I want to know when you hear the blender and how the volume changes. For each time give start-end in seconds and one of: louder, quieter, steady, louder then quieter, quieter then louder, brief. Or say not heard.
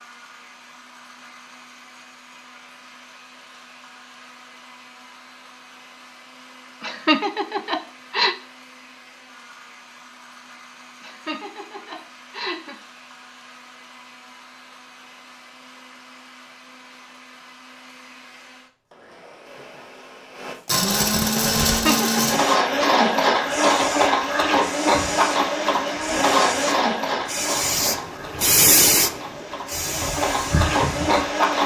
0.0-31.6 louder.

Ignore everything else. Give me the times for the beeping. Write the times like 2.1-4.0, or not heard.
not heard.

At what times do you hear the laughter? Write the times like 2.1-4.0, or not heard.
6.8-8.3, 11.0-12.8, 21.6-22.4.